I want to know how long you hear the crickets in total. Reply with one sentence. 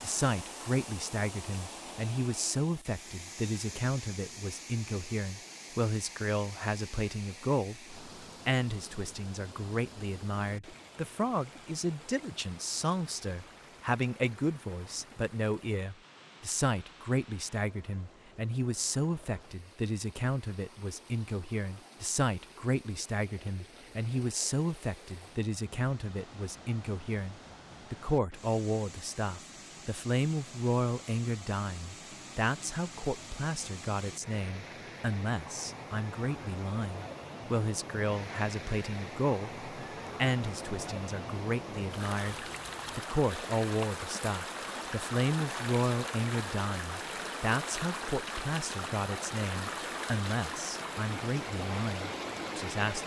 You can't hear the crickets here.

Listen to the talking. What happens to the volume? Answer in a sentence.
The volume of the talking stays about the same.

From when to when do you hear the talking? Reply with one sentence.
You can hear the talking from 0.0 to 53.0 s.